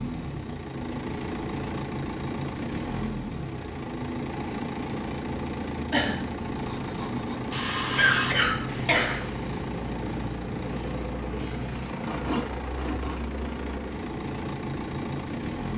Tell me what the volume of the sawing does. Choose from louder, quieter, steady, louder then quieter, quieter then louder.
quieter then louder.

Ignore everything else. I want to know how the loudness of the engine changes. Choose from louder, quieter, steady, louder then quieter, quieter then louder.
steady.